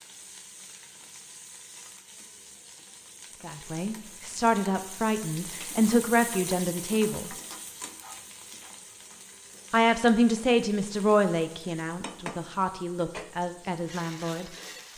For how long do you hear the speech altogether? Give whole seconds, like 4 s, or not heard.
9 s.